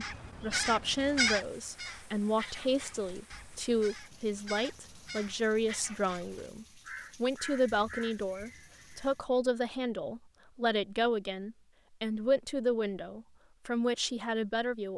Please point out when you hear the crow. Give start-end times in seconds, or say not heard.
0.0-9.2.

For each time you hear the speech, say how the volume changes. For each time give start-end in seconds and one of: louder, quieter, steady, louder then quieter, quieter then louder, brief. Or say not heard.
0.0-14.9 steady.